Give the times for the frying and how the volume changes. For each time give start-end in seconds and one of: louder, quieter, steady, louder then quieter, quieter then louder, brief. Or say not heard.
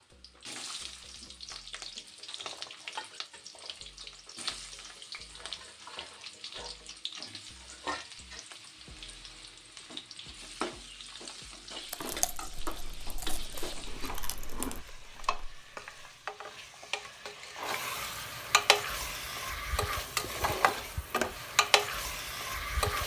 0.0-23.0 louder.